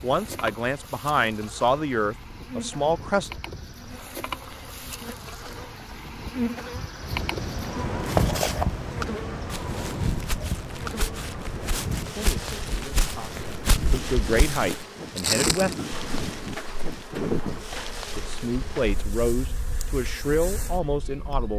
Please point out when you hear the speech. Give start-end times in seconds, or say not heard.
0.0-3.3, 12.1-15.8, 18.1-21.5.